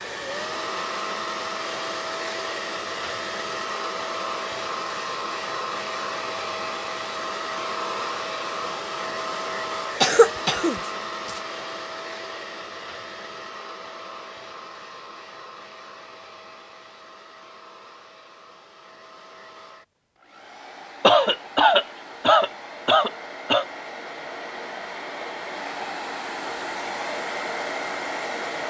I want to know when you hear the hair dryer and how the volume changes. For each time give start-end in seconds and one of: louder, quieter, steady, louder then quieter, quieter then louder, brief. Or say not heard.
0.0-28.6 quieter then louder.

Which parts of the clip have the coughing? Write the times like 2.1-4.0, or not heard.
10.0-11.4, 21.0-23.6.